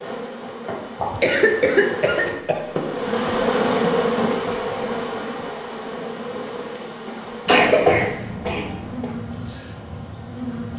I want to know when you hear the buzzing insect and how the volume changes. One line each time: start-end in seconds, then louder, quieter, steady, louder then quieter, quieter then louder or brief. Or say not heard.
0.0-10.7 louder then quieter.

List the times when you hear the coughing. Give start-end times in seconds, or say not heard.
1.0-2.6, 7.5-9.1.